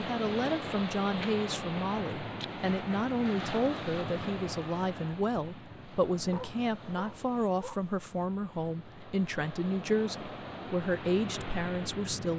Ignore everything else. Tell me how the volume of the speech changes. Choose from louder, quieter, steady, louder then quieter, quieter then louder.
steady.